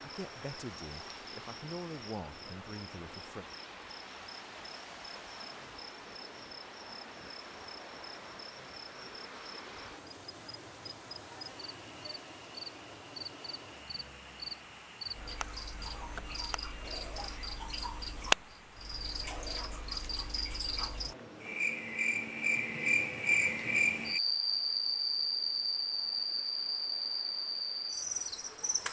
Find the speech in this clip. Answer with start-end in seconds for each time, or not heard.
0.0-3.5.